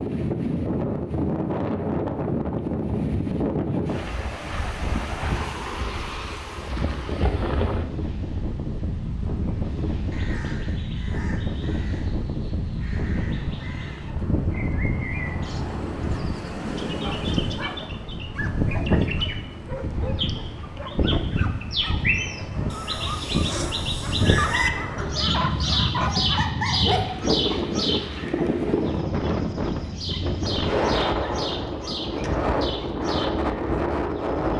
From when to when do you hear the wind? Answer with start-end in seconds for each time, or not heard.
0.0-34.5.